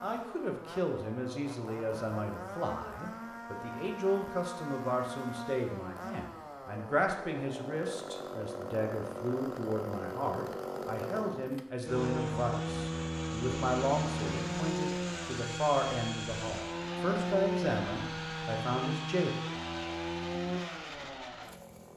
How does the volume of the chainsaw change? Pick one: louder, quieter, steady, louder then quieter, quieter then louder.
louder.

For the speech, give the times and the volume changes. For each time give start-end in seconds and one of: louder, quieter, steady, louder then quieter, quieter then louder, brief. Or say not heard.
0.0-19.3 steady.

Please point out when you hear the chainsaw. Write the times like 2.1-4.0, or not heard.
0.0-21.9.